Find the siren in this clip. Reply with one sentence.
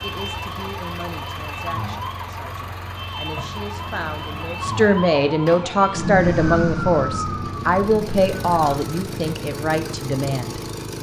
The siren can be heard from 0.0 to 8.8 s.